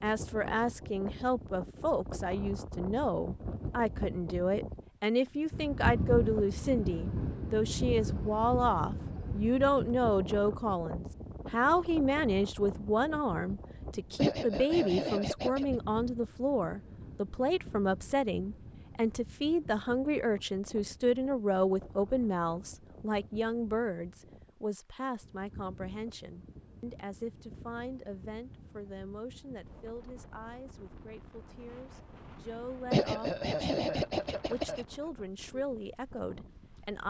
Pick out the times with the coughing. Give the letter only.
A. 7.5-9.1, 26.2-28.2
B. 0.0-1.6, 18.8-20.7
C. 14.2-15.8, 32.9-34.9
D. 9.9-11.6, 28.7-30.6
C.